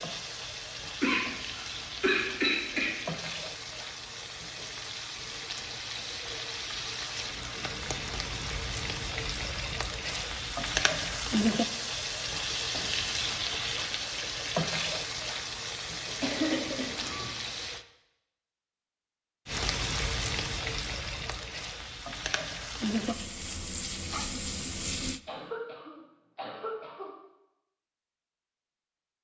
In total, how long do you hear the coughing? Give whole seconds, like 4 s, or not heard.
5 s.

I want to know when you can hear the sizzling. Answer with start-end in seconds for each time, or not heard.
0.0-17.9, 19.4-25.2.